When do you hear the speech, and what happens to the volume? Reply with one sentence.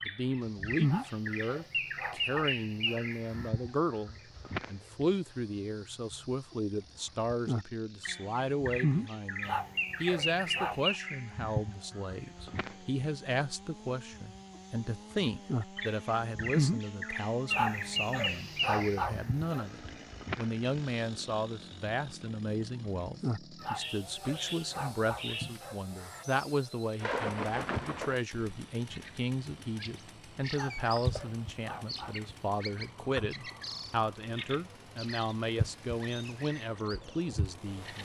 You can hear the speech from 0.1 to 38.0 s, at a steady volume.